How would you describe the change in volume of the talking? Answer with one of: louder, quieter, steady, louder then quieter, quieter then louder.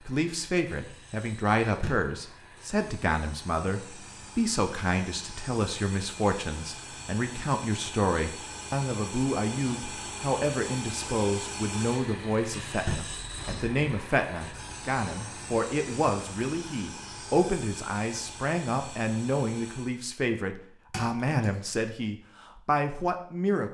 steady.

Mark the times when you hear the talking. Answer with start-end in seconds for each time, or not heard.
0.1-23.7.